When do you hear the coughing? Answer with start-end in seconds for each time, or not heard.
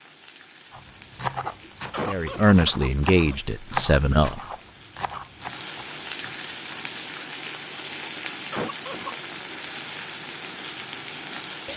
1.6-3.4, 8.0-9.2.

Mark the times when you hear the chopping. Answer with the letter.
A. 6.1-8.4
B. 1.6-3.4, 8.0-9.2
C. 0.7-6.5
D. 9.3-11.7
C.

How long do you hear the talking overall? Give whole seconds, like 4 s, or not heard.
2 s.